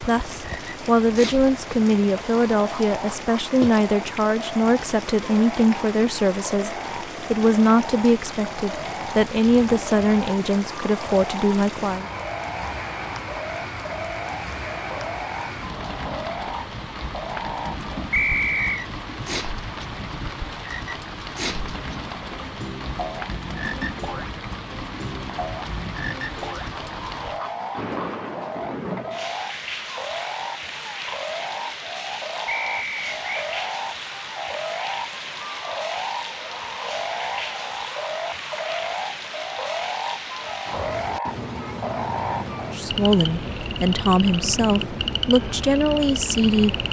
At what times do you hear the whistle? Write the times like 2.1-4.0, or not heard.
18.1-18.8, 32.5-33.2.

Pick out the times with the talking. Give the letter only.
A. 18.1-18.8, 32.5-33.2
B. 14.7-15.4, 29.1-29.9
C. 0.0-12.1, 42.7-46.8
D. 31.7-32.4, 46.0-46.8
C.